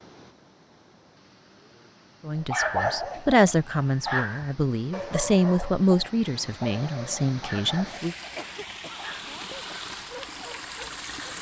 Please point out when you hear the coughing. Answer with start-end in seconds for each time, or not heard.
8.2-9.8.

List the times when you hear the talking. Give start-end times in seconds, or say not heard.
2.2-8.2.